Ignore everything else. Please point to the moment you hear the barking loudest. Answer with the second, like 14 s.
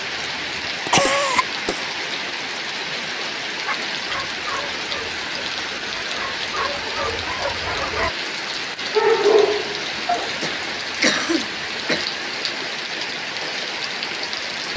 9 s.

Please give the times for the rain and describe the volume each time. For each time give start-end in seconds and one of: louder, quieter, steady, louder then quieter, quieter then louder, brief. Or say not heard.
0.0-14.7 steady.